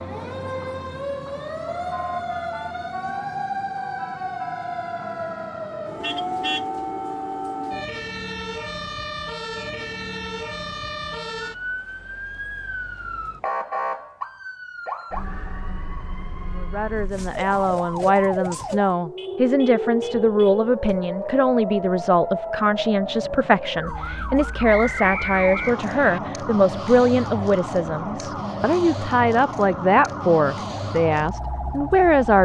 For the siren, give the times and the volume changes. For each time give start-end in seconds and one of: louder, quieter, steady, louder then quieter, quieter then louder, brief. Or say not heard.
0.0-32.3 steady.